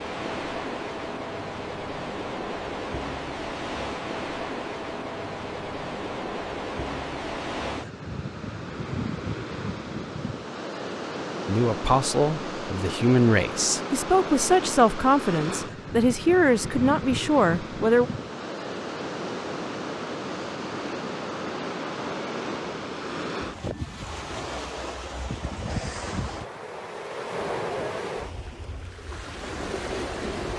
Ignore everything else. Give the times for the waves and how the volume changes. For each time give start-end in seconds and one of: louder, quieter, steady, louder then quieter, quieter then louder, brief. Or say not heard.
0.0-30.5 steady.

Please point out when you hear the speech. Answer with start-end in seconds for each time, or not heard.
11.4-18.1.